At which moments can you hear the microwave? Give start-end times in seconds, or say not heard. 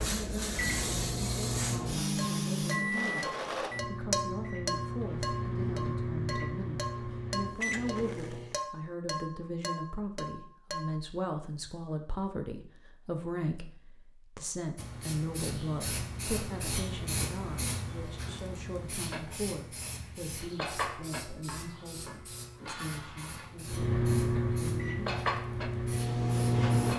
0.0-8.6, 23.6-26.9.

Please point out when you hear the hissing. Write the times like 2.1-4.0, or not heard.
0.0-3.7, 14.8-26.9.